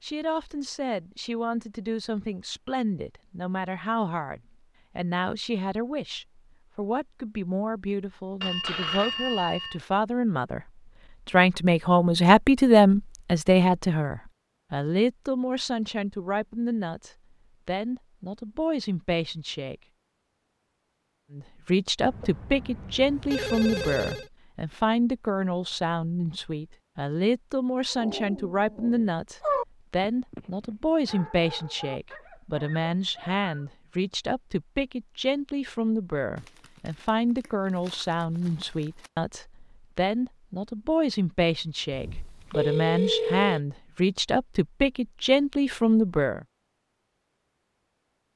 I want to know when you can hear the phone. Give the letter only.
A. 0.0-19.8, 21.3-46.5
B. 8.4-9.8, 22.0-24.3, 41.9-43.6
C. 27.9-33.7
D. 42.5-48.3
B.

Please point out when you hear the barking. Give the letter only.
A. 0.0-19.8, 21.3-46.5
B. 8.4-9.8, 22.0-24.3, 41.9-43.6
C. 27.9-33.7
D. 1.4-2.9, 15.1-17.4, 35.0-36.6
C.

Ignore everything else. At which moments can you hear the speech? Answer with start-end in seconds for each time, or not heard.
0.0-19.8, 21.3-46.5.